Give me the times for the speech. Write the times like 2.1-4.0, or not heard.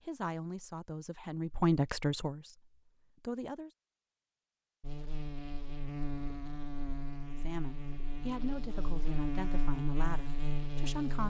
0.1-3.7, 7.3-11.2.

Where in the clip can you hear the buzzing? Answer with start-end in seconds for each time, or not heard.
4.8-11.2.